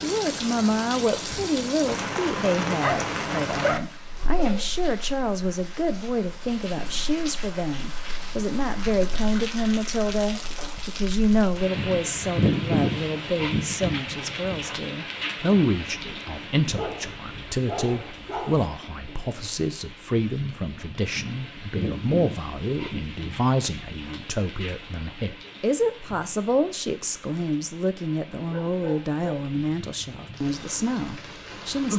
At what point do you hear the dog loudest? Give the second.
4 s.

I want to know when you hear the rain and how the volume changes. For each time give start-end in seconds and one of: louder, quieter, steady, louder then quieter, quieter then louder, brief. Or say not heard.
0.0-31.9 quieter.